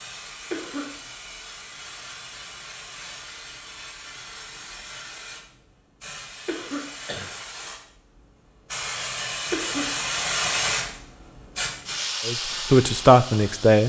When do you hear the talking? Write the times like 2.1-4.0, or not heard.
12.2-13.8.